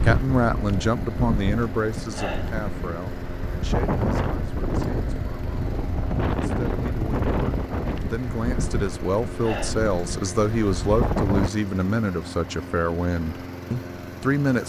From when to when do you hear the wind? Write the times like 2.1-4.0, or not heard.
0.0-11.5.